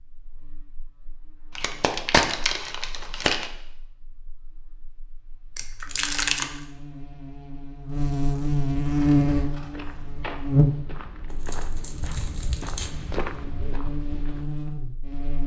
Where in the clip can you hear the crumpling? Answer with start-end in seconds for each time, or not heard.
1.6-3.5, 5.5-6.6, 11.3-12.9.